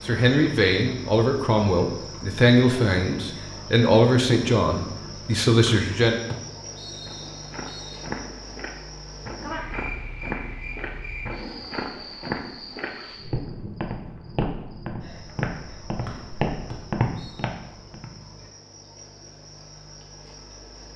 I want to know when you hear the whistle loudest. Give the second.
6 s.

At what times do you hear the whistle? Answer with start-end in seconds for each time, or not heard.
5.7-8.0, 16.1-17.4.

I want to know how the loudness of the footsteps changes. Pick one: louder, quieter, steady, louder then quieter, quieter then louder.
louder.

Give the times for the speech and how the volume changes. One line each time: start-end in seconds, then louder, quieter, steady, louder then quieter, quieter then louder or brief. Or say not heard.
0.0-6.2 steady.